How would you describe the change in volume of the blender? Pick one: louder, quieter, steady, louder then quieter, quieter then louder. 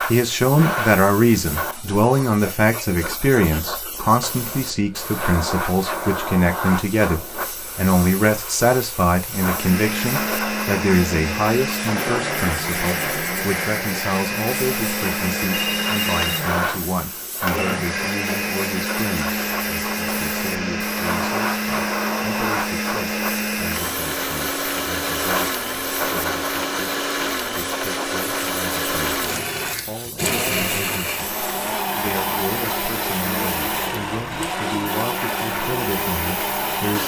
steady.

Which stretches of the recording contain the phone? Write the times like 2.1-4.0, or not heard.
15.5-16.4.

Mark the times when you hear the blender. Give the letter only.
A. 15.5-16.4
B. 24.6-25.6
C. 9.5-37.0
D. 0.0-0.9
C.